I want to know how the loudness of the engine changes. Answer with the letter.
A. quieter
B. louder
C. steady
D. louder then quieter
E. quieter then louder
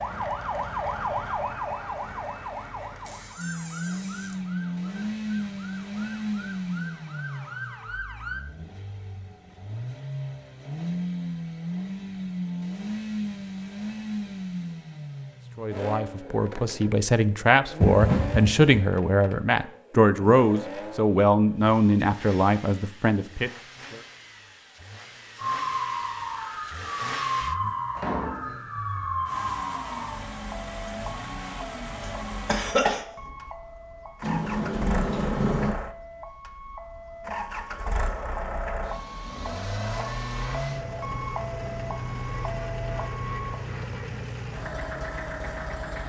E.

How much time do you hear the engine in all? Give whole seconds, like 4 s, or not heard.
43 s.